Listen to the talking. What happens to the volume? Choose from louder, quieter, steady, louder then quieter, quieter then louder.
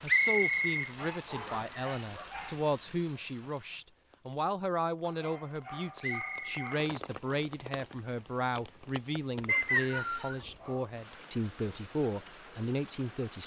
steady.